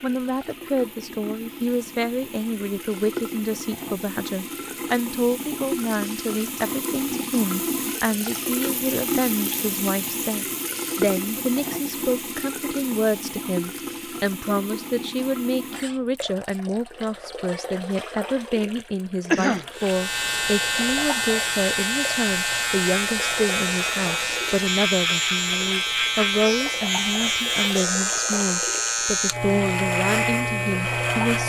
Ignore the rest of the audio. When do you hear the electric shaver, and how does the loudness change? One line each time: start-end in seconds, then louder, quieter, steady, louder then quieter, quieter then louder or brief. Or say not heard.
19.7-31.4 steady.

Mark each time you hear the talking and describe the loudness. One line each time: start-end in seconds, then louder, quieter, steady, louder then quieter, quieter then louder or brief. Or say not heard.
0.0-31.4 steady.